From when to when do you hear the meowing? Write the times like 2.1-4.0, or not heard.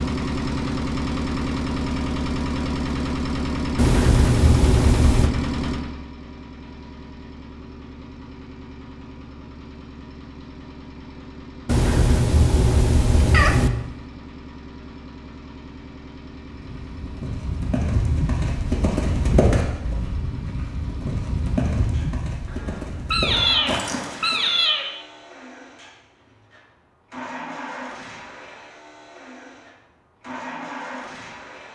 3.8-5.3, 11.7-13.7, 22.4-24.9.